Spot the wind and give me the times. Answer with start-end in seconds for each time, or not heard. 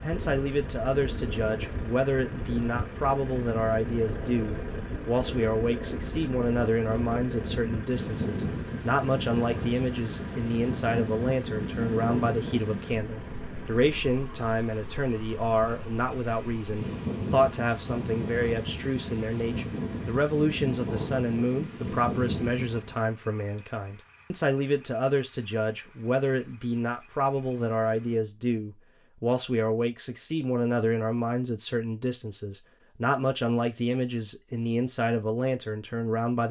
0.0-22.9.